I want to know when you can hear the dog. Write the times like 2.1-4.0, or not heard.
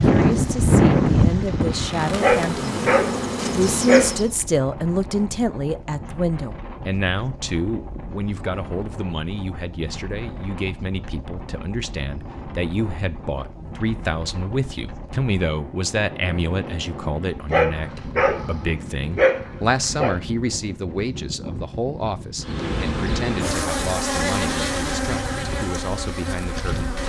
2.2-4.2, 17.5-20.1.